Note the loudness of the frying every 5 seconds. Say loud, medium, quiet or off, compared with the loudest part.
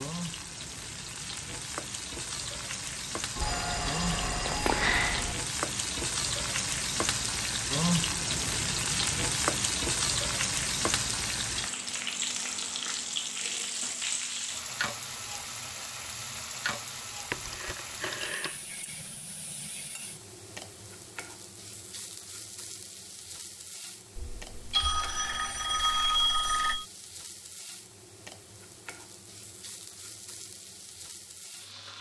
medium, loud, loud, medium, quiet, quiet, quiet.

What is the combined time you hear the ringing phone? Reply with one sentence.
The ringing phone can be heard for 6 seconds in total.